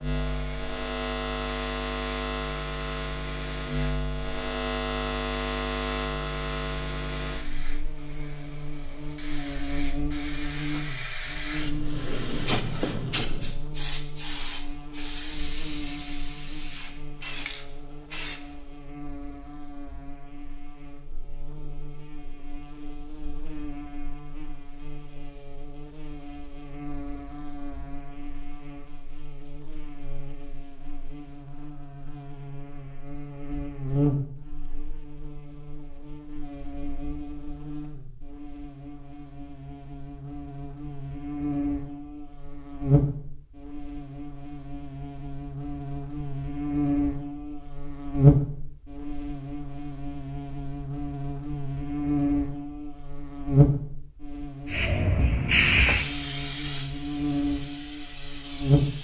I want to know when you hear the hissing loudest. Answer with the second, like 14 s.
56 s.